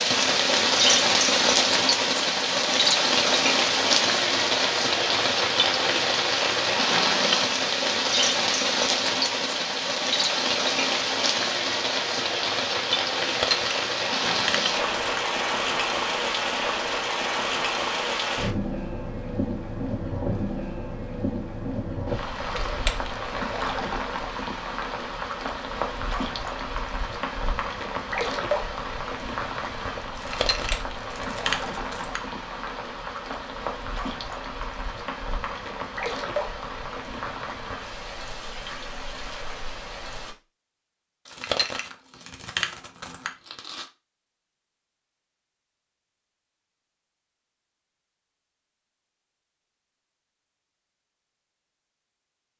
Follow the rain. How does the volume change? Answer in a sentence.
The loudness of the rain goes down.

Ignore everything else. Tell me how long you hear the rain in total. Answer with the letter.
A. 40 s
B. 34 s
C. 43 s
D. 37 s
A.